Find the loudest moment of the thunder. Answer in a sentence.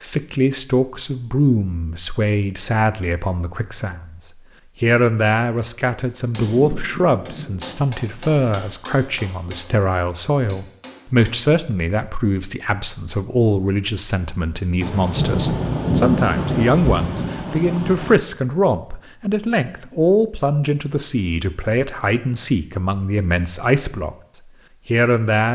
The volume of the thunder peaks at 16 seconds.